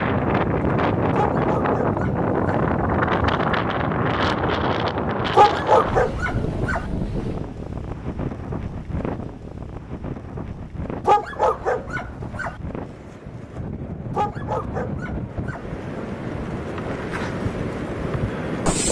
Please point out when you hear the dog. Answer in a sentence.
You can hear the dog from 1.1 to 2.6 s, from 5.3 to 6.8 s, from 11.1 to 12.6 s and from 14.1 to 15.7 s.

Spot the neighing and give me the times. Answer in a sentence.
The neighing can't be heard in this clip.